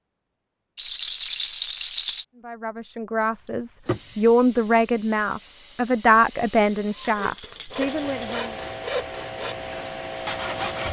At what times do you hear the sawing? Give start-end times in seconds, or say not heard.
7.1-10.8.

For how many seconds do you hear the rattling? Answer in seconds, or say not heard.
3 s.